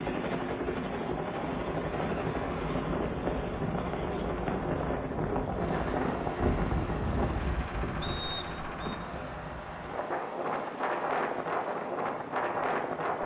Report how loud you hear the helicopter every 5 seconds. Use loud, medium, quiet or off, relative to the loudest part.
loud, medium, quiet.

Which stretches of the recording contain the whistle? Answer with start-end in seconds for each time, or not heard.
8.0-8.9.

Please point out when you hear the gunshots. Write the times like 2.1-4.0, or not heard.
7.3-9.1.